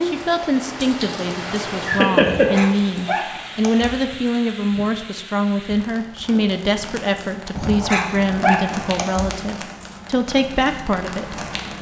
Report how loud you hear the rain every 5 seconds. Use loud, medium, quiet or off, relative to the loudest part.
loud, medium, medium.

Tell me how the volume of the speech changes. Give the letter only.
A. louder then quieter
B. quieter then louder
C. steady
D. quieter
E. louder
C.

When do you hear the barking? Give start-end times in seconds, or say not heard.
2.2-4.0, 7.5-9.3.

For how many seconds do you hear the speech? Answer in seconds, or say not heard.
12 s.